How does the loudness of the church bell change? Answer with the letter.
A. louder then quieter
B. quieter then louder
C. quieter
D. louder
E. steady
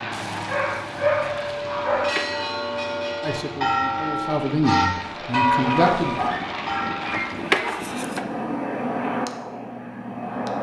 A.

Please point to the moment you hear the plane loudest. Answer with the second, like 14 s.
9 s.